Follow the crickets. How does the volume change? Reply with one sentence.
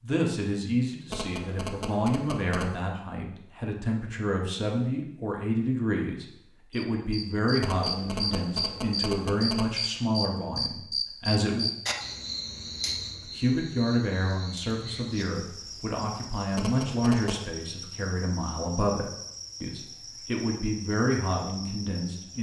The volume of the crickets goes down.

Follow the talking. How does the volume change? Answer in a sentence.
The loudness of the talking stays about the same.